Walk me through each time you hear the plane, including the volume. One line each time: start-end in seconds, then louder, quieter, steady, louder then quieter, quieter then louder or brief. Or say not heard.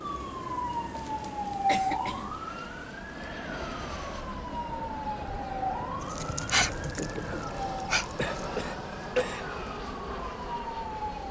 0.0-11.2 louder.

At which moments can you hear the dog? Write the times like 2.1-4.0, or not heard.
6.0-8.4.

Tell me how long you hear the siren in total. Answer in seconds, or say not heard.
11 s.